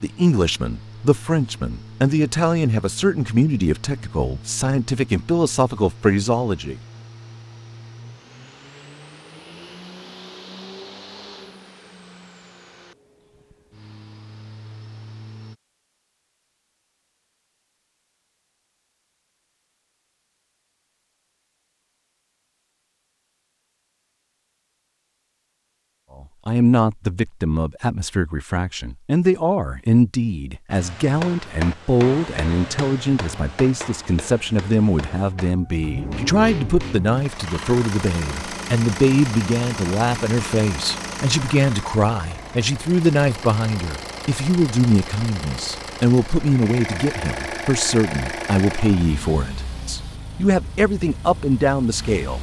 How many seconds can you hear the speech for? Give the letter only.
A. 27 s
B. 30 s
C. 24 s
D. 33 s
D.